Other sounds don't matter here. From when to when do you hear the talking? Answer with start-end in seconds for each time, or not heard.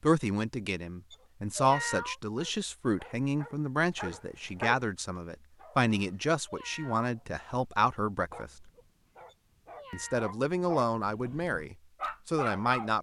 0.0-8.7, 9.9-12.9.